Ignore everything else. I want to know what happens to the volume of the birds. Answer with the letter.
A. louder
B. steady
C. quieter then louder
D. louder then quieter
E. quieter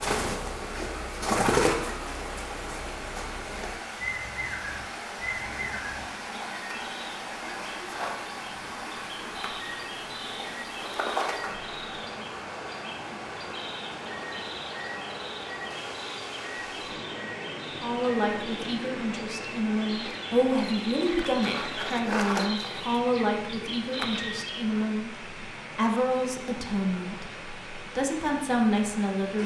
C.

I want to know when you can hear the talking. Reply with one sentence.
The talking can be heard from 17.8 to 29.4 s.